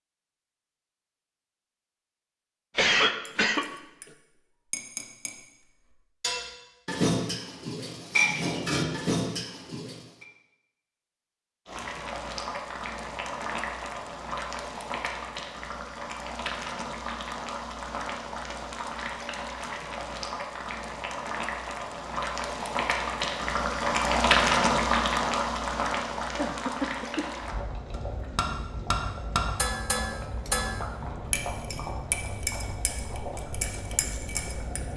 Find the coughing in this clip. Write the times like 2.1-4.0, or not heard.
2.8-3.6, 26.4-27.2.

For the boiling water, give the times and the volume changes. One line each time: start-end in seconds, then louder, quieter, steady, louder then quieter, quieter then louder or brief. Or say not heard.
11.7-34.9 louder then quieter.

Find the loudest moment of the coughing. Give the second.
3 s.